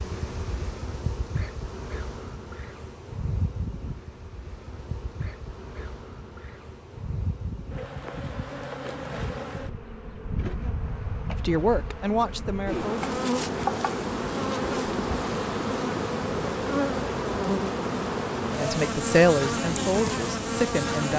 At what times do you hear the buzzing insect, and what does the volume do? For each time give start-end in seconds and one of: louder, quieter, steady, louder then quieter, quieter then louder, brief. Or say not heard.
0.0-21.1 louder.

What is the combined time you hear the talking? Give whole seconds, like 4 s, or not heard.
4 s.